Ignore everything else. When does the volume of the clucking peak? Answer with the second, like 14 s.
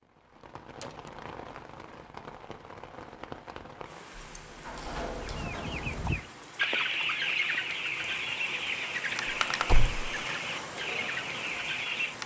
7 s.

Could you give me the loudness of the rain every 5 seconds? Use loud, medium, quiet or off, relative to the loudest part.
medium, loud, loud.